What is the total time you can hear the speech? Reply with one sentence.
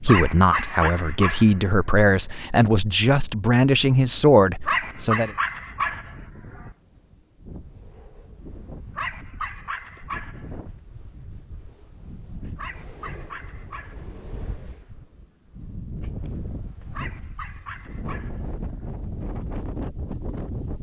The speech can be heard for 5 seconds in total.